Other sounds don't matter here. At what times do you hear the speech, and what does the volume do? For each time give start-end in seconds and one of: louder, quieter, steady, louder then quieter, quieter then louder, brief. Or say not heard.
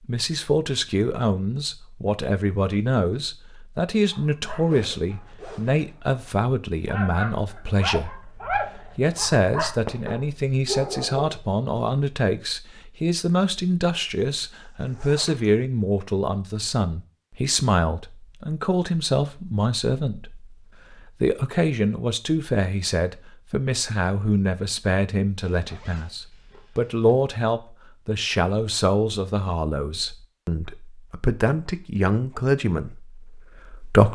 0.1-34.1 steady.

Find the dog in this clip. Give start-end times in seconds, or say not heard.
4.0-11.4.